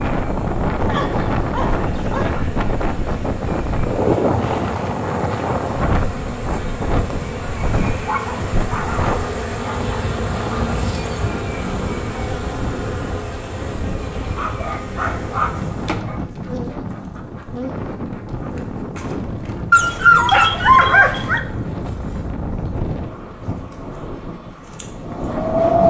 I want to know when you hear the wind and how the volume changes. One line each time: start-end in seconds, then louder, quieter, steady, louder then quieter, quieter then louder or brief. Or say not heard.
0.0-25.8 quieter.